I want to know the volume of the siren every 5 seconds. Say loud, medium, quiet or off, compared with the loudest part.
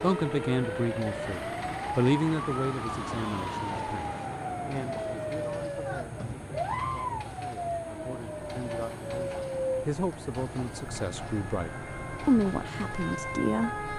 loud, loud, medium.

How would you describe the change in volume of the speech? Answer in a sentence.
The volume of the speech goes down, then up.